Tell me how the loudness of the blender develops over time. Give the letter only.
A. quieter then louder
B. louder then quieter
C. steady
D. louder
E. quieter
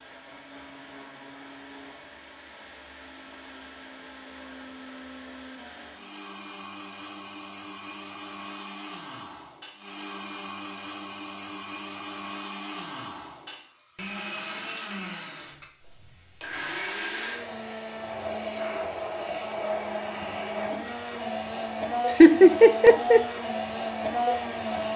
D.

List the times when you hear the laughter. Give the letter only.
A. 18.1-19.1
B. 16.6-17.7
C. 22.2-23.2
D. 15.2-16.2
C.